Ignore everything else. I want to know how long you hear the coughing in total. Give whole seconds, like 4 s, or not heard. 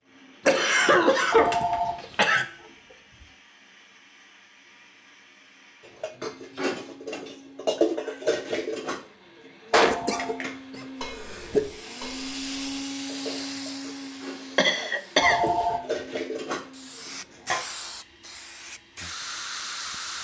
5 s.